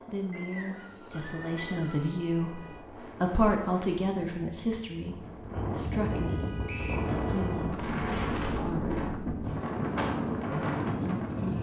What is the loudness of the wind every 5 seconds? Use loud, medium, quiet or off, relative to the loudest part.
quiet, loud, loud.